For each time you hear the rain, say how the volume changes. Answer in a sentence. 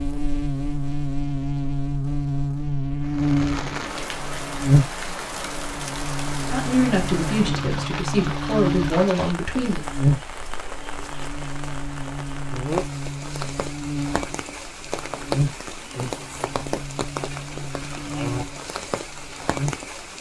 You can hear the rain from 3.0 to 20.1 s, at a steady volume.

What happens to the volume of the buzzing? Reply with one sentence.
The volume of the buzzing goes down.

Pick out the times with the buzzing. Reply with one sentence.
You can hear the buzzing from 0.0 to 19.9 s.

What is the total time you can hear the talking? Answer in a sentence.
You can hear the talking for 3 seconds altogether.